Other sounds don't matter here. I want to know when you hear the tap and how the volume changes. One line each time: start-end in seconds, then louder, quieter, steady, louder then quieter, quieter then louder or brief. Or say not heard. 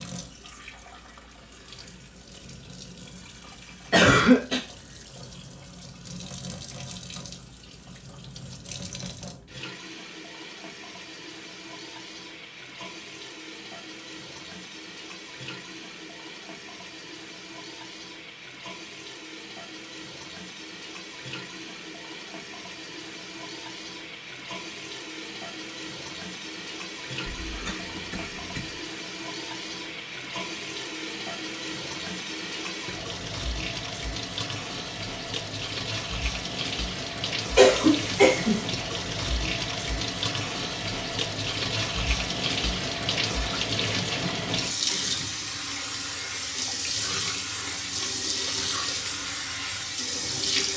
0.0-50.7 louder.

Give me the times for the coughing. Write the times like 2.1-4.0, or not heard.
3.9-4.6, 27.2-28.8, 37.5-38.6.